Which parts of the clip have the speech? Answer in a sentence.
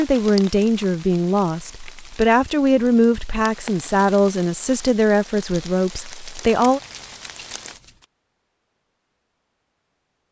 You can hear the speech from 0.0 to 6.8 s.